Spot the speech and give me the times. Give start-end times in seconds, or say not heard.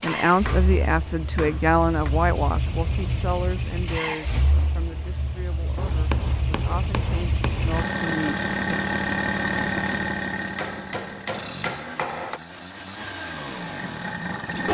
0.0-8.8.